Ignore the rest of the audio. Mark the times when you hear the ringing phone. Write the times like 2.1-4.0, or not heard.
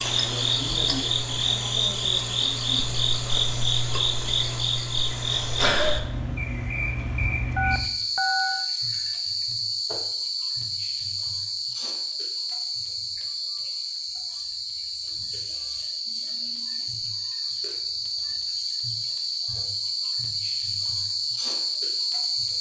7.5-8.7.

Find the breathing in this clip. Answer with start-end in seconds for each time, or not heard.
not heard.